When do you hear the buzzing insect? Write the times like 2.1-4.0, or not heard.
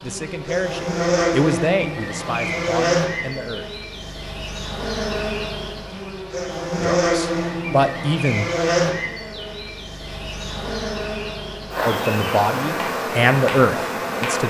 0.0-14.4.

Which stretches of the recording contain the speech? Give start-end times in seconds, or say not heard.
0.0-3.6, 6.8-8.4, 11.8-14.4.